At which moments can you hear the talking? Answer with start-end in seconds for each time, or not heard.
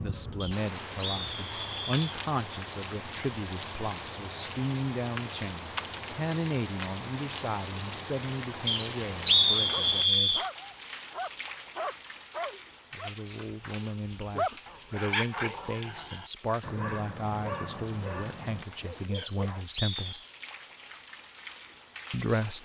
0.0-10.4, 12.9-20.2, 22.1-22.6.